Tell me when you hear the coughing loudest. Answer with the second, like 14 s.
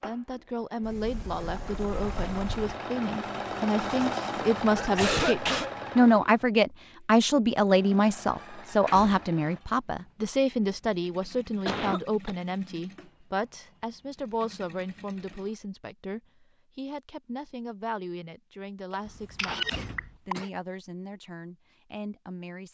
5 s.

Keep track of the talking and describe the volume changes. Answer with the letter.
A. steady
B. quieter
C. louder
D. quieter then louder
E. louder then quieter
E.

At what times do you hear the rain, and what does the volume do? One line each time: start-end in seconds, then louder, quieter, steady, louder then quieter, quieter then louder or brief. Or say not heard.
not heard.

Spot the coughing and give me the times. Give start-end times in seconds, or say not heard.
4.8-5.7, 11.7-12.3, 18.9-20.4.